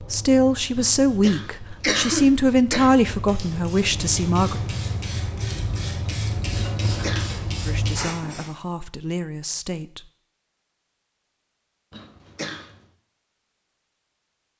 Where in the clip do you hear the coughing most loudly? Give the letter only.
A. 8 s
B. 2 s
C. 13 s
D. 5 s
B.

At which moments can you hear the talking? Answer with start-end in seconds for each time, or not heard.
0.0-4.6, 7.6-10.1.